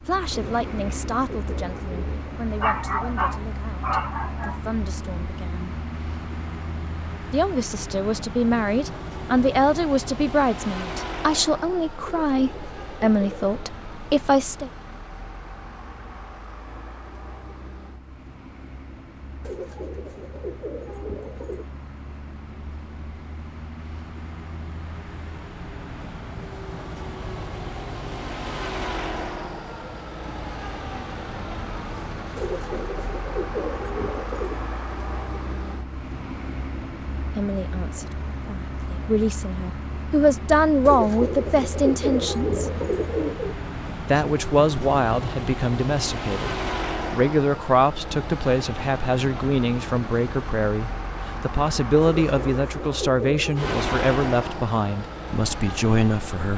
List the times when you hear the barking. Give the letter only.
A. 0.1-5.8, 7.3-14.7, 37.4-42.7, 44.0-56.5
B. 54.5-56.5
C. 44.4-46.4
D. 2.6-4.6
D.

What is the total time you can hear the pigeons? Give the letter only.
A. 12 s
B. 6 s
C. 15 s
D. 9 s
A.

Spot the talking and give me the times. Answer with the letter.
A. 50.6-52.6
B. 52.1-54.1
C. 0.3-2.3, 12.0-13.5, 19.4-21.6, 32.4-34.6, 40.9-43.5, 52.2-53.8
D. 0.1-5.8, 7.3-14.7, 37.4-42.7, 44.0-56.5
D.